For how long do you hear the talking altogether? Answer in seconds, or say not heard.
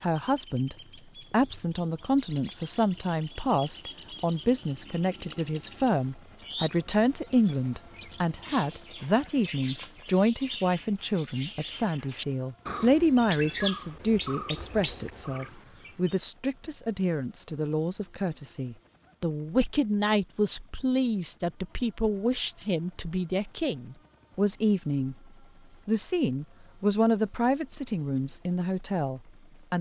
29 s.